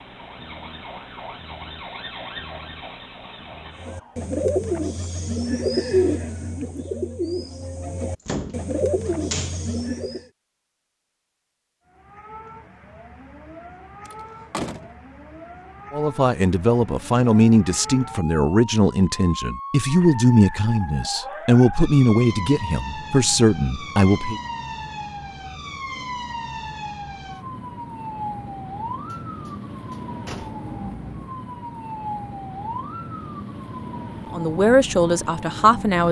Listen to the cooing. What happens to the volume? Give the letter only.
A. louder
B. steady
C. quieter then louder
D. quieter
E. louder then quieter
C.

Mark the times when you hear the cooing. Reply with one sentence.
You can hear the cooing from 3.8 to 10.2 s.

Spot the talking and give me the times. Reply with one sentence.
You can hear the talking from 15.9 to 24.4 s and from 34.3 to 36.0 s.